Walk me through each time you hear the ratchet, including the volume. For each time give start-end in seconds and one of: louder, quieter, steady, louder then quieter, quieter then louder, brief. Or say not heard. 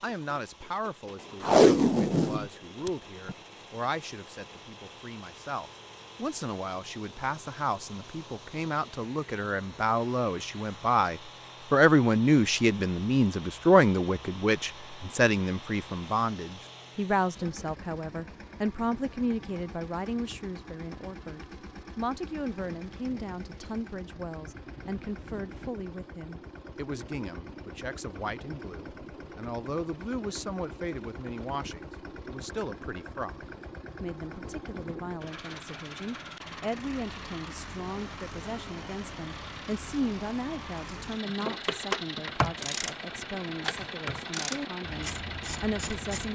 41.2-46.3 quieter.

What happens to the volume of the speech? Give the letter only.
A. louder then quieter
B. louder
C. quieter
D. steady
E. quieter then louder
A.